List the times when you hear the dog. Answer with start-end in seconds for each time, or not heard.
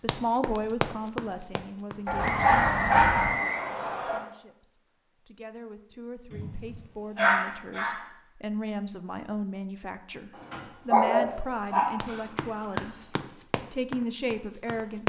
2.0-3.3, 6.3-8.0, 10.5-12.8.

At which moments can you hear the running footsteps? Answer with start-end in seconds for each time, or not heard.
0.1-2.4, 12.0-15.0.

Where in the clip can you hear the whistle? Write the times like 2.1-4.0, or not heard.
2.1-4.2.